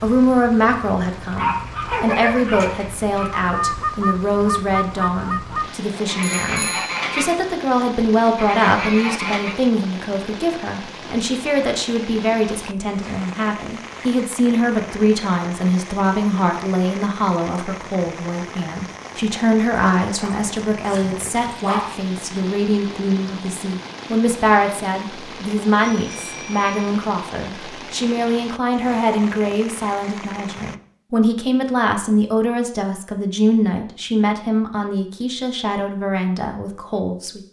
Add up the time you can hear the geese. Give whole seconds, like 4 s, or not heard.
5 s.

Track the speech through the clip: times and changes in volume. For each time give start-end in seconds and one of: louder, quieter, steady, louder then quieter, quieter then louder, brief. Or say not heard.
0.0-37.4 steady.